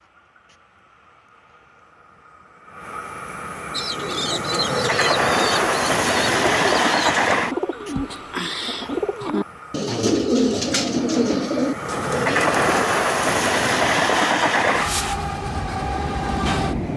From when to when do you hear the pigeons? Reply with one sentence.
The pigeons can be heard from 3.7 to 12.8 s.